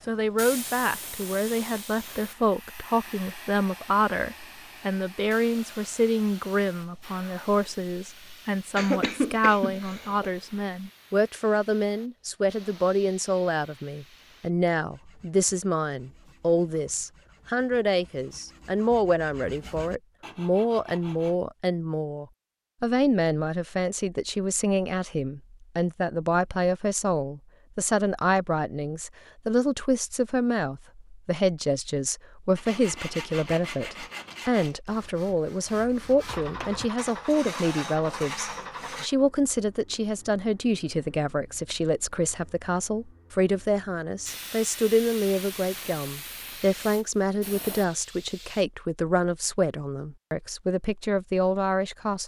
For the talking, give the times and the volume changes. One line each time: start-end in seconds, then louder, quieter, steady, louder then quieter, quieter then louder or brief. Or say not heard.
0.1-52.2 steady.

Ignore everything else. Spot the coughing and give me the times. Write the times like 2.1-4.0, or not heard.
8.8-10.3.